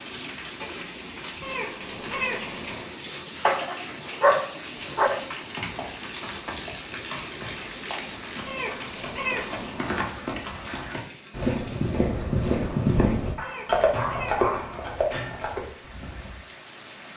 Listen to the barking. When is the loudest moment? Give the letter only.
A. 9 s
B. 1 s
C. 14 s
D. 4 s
D.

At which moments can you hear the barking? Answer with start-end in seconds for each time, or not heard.
3.5-5.2, 13.3-14.8.